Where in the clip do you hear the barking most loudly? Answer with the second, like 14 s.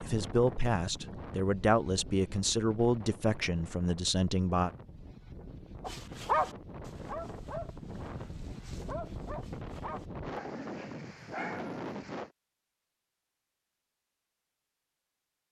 6 s.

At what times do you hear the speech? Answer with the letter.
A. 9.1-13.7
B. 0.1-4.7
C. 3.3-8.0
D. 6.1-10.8
B.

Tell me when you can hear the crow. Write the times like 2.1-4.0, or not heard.
not heard.